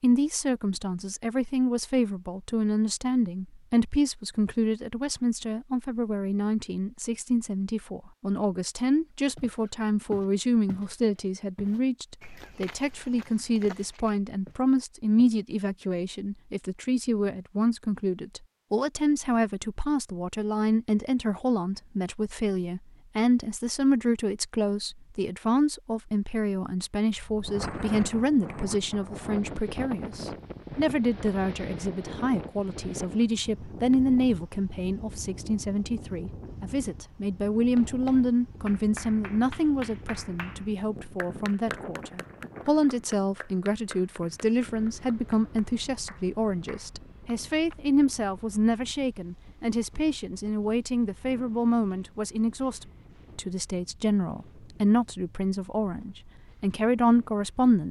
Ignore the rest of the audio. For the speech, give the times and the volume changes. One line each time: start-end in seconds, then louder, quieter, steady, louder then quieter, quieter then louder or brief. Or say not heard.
0.0-57.8 steady.